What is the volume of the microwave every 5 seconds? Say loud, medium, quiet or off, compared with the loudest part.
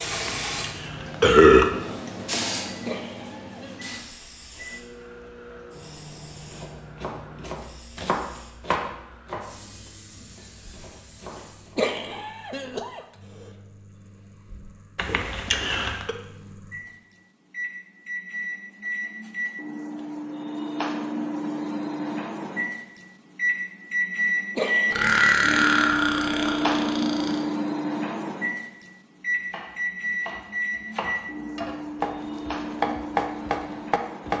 quiet, quiet, quiet, medium, loud, loud, medium.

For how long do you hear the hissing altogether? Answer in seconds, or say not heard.
12 s.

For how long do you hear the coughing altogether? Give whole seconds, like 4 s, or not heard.
3 s.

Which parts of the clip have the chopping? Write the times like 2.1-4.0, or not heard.
6.3-11.8, 29.4-34.3.